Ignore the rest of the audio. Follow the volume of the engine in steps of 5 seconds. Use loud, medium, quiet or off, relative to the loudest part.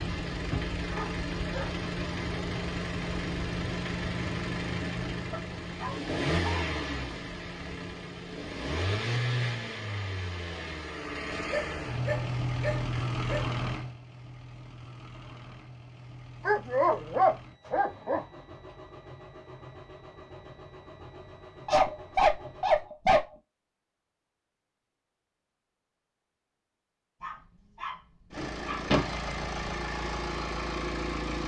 loud, loud, loud, quiet, quiet, loud, loud.